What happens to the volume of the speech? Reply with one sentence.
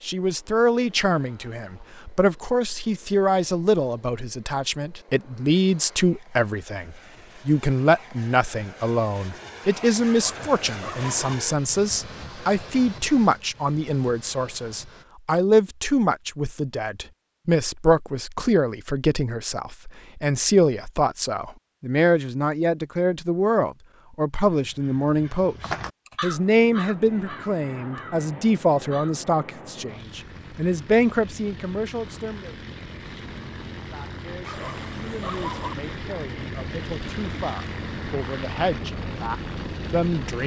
The loudness of the speech goes down.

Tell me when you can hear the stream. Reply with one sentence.
The stream can't be heard in this clip.